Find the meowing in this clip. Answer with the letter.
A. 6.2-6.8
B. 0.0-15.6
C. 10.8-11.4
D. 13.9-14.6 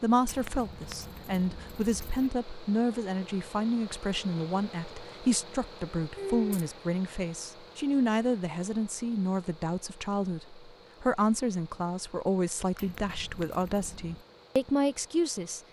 A.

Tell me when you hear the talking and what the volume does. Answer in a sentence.
The talking can be heard from 0.0 to 15.6 s, at a steady volume.